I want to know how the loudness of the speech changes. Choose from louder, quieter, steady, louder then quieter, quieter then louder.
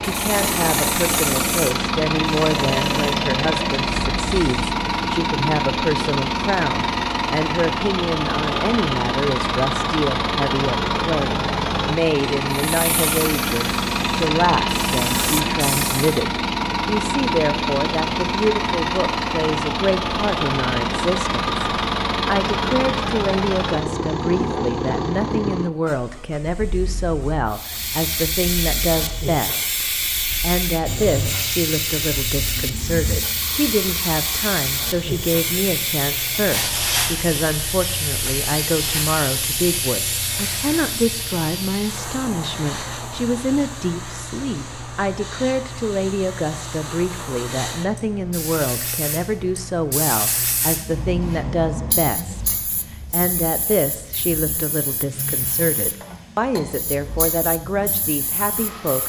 steady.